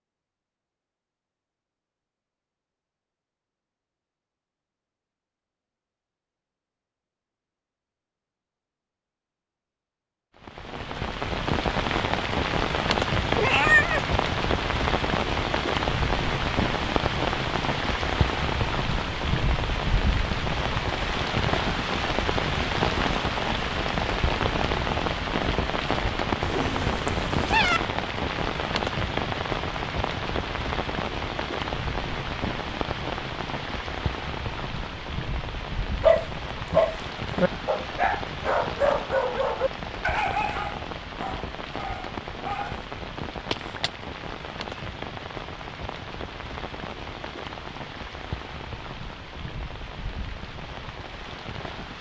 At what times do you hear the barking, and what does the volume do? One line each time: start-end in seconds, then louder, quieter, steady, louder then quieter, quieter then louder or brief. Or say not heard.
36.0-42.9 quieter.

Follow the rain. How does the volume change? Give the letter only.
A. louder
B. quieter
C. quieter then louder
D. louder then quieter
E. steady
B.